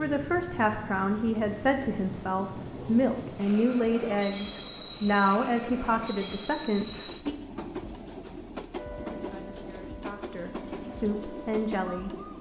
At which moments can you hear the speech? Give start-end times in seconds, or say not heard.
0.0-7.3, 9.1-12.2.